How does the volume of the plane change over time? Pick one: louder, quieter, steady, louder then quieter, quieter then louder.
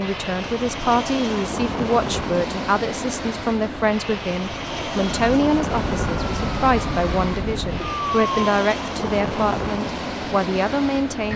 steady.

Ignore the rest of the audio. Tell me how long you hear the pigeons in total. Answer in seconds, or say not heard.
not heard.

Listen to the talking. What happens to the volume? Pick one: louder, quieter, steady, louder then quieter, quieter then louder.
steady.